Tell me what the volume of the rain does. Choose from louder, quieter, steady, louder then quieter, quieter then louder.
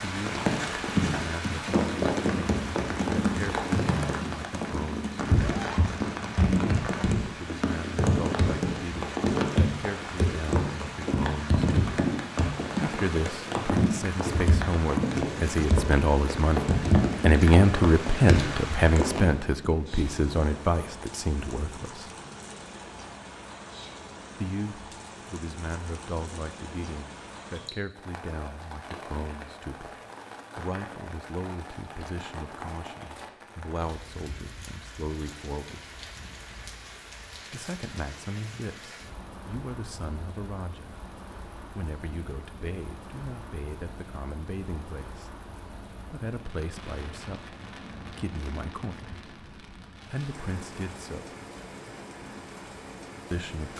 quieter.